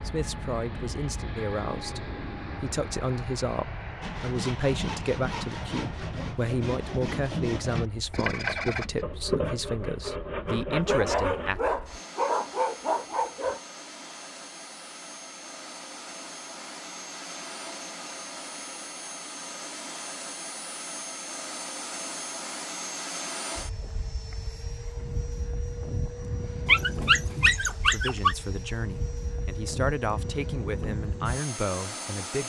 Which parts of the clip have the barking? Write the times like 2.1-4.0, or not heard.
10.7-13.6, 26.6-28.4.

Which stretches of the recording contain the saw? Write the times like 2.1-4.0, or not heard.
4.0-11.5.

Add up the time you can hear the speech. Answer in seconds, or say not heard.
16 s.